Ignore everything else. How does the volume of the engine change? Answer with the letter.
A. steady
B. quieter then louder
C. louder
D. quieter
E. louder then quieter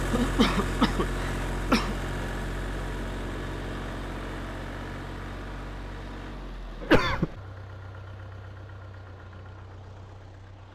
D.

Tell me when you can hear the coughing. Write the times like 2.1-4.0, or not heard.
0.1-1.9, 6.8-7.3.